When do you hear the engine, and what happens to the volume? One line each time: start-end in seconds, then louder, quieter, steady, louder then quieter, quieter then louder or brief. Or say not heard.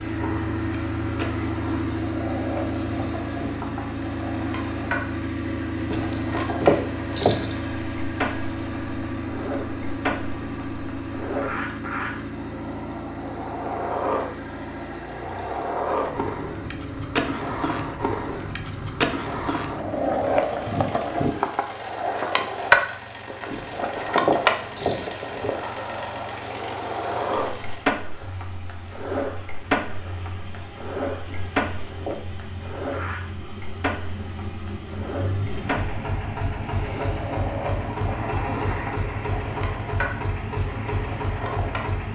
0.0-42.0 quieter then louder.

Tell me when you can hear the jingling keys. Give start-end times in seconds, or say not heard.
5.9-7.5, 23.5-25.5, 31.2-32.2.